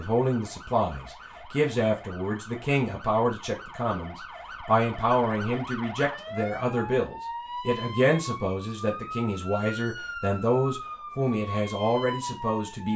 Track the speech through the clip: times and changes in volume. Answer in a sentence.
The speech can be heard from 0.0 to 12.9 s, at a steady volume.